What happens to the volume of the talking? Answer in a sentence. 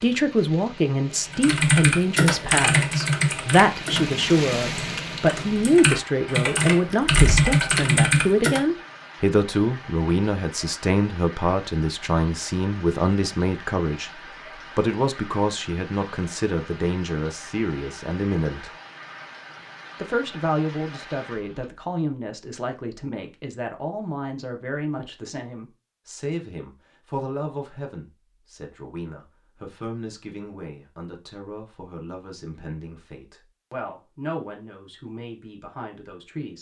The volume of the talking goes down.